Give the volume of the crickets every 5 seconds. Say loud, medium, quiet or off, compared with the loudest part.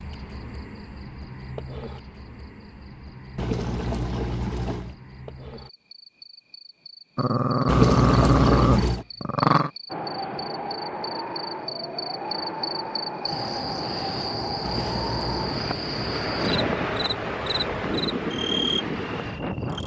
medium, quiet, loud, loud.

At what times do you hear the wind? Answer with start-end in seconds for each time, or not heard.
9.9-19.8.